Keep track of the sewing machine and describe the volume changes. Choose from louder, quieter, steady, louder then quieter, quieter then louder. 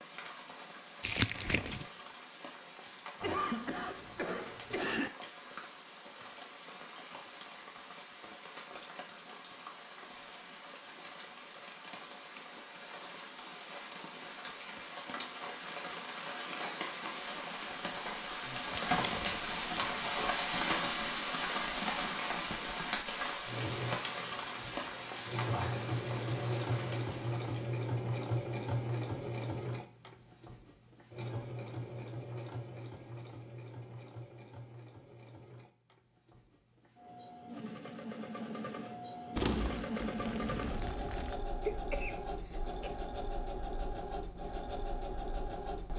quieter then louder.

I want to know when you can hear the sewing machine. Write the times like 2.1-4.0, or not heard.
23.4-45.9.